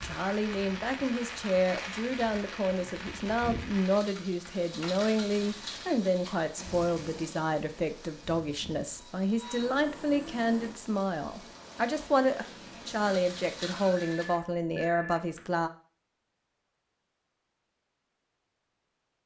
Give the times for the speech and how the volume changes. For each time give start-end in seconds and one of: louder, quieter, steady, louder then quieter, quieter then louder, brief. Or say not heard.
0.0-15.7 steady.